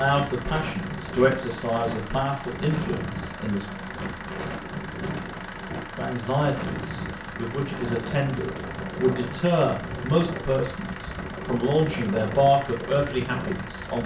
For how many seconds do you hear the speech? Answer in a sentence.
You can hear the speech for 12 seconds altogether.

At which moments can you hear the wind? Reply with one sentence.
You can hear the wind from 0.0 to 14.0 s.